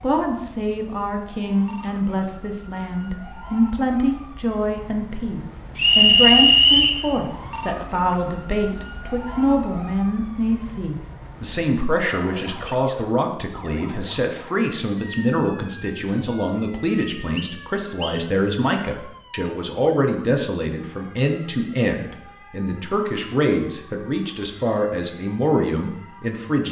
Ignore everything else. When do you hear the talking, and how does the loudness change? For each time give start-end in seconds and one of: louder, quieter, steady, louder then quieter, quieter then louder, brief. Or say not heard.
0.0-26.6 steady.